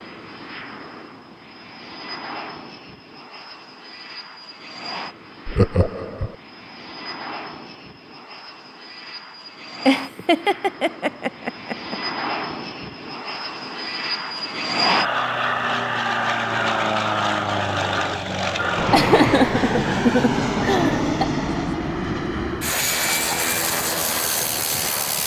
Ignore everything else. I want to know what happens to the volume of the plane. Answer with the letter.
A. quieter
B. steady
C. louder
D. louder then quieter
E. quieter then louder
C.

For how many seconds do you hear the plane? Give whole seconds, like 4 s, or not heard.
25 s.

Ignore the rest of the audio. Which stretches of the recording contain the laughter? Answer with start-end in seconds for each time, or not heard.
5.5-6.3, 9.8-11.9, 18.9-21.2.